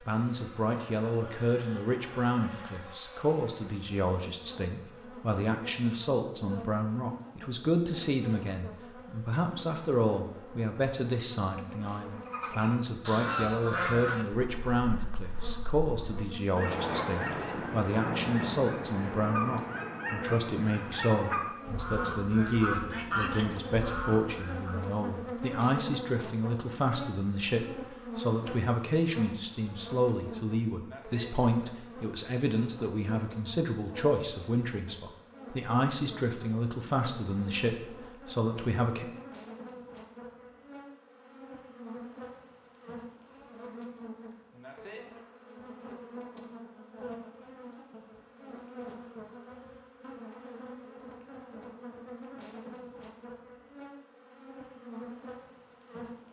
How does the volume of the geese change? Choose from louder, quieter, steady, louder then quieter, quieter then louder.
steady.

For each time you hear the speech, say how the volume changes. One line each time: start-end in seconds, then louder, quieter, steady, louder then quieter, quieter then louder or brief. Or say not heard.
0.0-39.0 steady.